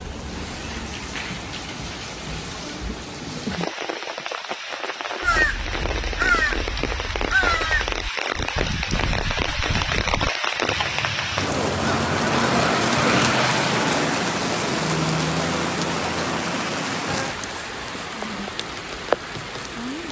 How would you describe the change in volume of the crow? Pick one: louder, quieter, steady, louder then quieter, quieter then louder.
quieter.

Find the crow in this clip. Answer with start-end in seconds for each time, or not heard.
5.2-12.7.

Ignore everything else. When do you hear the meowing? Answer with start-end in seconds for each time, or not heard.
not heard.